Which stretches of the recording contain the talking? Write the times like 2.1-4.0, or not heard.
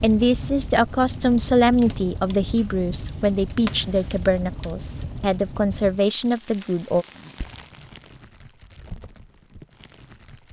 0.0-7.0.